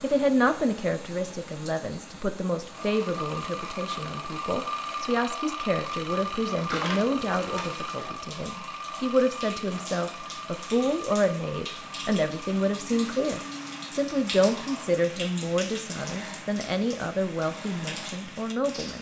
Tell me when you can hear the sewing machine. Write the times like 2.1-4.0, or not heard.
2.7-18.3.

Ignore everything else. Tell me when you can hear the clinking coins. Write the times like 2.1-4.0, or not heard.
6.7-7.9.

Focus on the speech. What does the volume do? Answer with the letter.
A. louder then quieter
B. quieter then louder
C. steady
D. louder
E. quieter
C.